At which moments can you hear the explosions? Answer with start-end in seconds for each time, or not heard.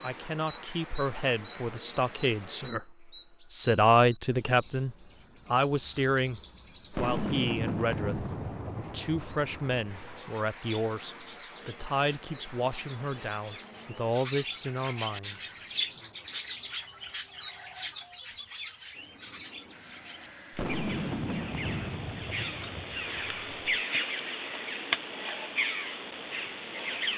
6.9-10.2, 20.5-23.8.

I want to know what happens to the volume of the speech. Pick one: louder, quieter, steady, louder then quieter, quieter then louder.
louder then quieter.